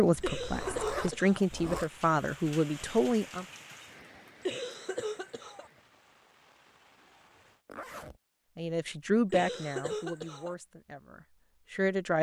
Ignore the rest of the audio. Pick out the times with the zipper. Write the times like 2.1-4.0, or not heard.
0.1-1.9, 7.7-8.2.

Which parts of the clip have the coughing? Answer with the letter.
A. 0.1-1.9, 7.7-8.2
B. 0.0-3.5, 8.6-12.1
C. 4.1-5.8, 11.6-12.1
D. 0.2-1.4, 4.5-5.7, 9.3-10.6
D.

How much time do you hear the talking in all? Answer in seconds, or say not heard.
7 s.